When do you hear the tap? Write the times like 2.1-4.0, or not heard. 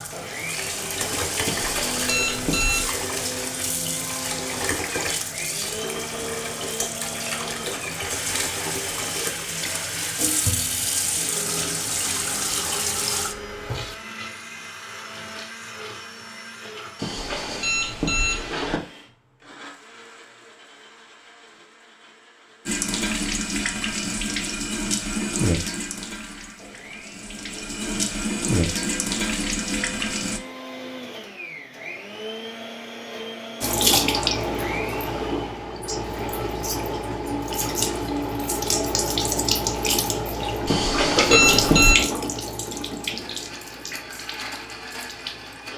0.0-13.9, 22.6-30.4, 33.6-45.7.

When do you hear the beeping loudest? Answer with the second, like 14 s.
42 s.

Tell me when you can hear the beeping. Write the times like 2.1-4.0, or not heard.
1.4-3.0, 16.9-18.8, 40.6-42.0.